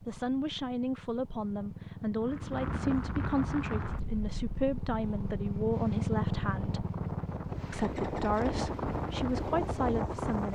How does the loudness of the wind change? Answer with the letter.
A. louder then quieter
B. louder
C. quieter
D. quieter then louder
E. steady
D.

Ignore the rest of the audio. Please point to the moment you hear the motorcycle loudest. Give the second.
6 s.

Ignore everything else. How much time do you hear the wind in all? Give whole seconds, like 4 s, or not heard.
8 s.